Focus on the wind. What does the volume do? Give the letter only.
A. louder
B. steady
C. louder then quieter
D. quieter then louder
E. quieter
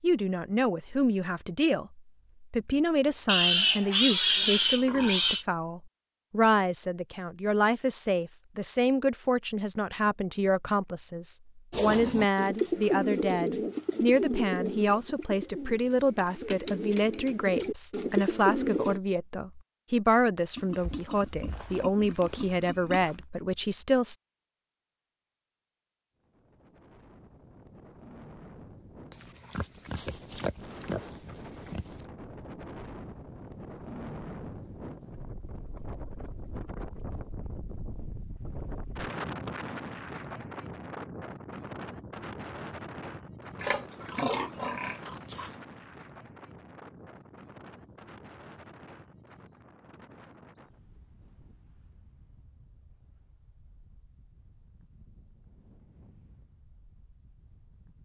C.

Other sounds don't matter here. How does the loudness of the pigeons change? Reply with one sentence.
The volume of the pigeons goes down, then up.